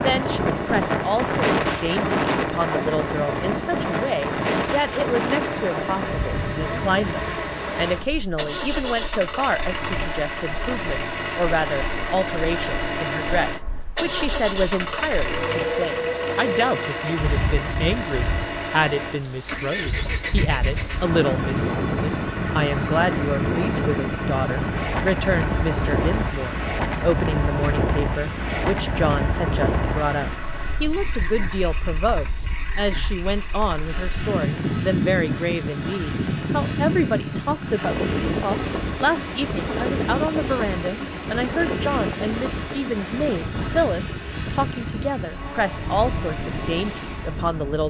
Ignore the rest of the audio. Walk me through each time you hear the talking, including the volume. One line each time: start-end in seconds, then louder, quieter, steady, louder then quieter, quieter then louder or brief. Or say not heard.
0.0-47.8 steady.